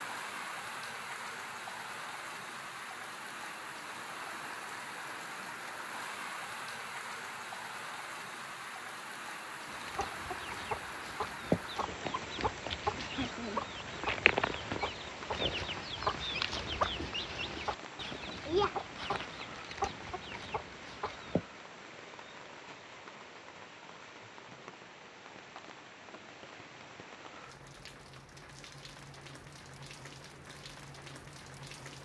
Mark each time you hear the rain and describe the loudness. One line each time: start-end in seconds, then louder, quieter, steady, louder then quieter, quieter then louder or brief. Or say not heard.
0.0-32.0 quieter.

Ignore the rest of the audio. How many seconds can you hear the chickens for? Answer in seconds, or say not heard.
12 s.